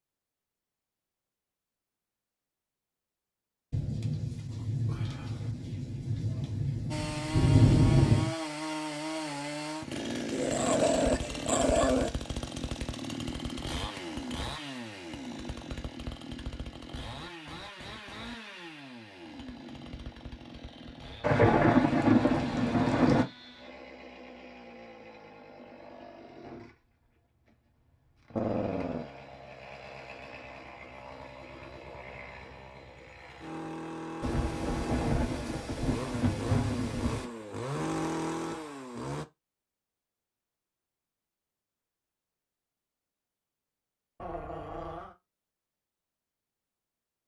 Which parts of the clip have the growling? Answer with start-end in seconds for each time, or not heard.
10.3-12.1, 28.4-29.1, 44.2-45.1.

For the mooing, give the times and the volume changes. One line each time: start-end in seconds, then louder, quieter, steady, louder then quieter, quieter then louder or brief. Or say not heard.
not heard.